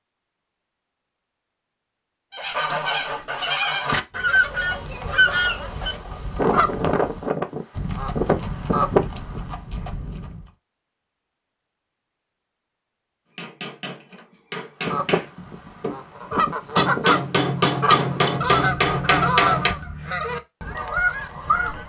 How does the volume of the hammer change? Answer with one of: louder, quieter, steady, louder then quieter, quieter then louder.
louder.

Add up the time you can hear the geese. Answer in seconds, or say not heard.
14 s.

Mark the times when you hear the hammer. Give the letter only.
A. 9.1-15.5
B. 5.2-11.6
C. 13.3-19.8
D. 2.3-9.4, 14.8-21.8
C.